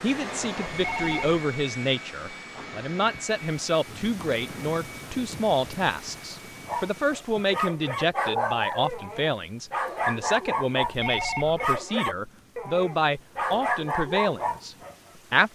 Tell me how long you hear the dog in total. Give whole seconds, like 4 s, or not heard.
8 s.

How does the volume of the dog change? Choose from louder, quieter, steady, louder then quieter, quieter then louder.
steady.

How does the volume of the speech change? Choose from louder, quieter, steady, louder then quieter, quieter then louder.
steady.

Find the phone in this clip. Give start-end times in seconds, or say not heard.
0.8-1.4, 10.8-11.7.